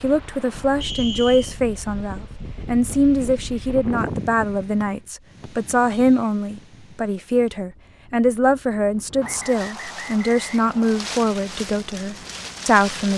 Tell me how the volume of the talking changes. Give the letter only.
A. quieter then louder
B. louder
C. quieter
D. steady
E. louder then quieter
D.